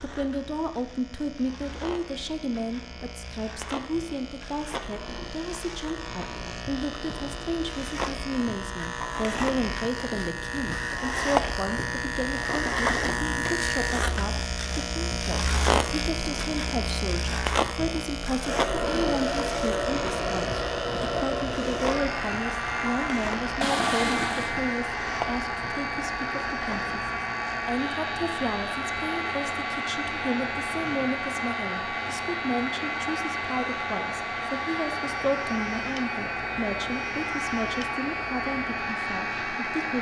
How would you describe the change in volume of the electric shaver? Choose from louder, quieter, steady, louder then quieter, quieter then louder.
louder then quieter.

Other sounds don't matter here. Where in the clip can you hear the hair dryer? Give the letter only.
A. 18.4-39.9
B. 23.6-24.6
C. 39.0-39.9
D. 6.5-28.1
A.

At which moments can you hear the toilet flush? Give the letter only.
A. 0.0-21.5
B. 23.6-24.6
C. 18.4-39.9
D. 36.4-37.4
B.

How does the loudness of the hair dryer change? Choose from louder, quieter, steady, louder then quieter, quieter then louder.
steady.